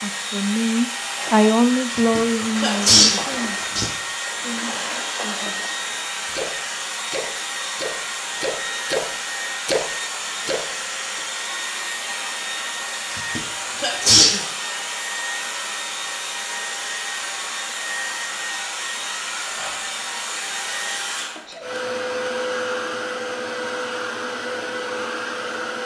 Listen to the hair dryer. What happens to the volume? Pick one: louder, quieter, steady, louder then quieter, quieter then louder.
steady.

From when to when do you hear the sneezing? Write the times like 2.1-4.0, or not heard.
1.9-3.9, 13.1-14.4, 21.3-21.8.